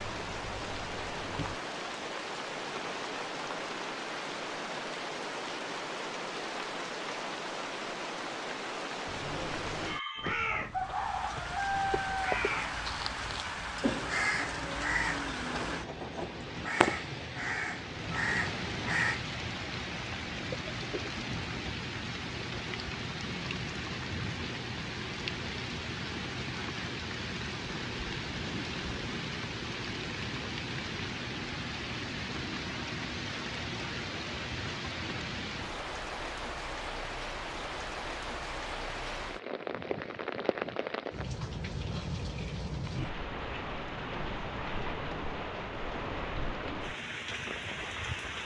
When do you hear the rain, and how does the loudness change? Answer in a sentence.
You can hear the rain from 0.0 to 48.4 s, at a steady volume.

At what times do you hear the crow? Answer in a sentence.
You can hear the crow from 10.2 to 19.2 s.